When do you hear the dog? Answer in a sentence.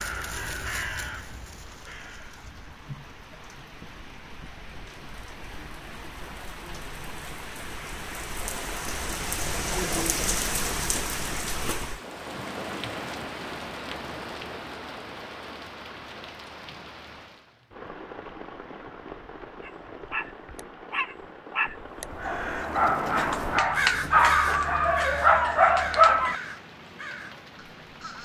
The dog can be heard from 19.6 to 26.4 s.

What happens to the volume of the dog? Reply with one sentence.
The volume of the dog goes up.